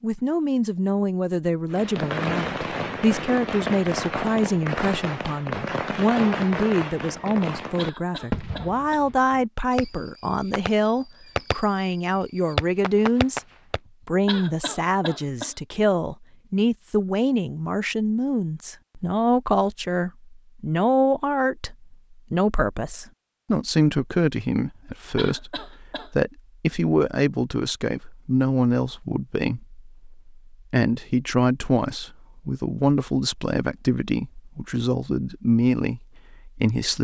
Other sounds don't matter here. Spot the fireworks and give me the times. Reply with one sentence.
The fireworks can be heard from 1.7 to 13.8 s.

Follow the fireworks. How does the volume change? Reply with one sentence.
The volume of the fireworks goes down, then up.